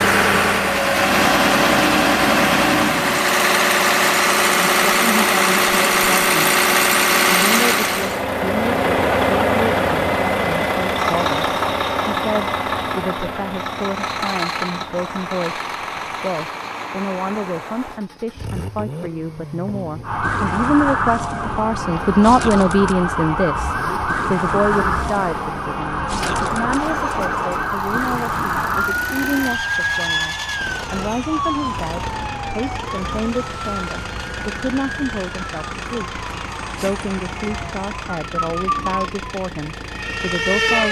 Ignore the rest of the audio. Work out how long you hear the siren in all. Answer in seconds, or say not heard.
21 s.